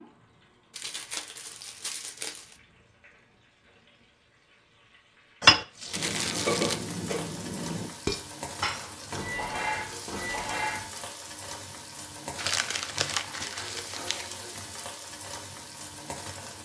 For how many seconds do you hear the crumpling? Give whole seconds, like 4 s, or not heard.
5 s.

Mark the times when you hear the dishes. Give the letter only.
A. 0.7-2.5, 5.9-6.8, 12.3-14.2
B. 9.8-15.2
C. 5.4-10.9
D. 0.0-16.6
C.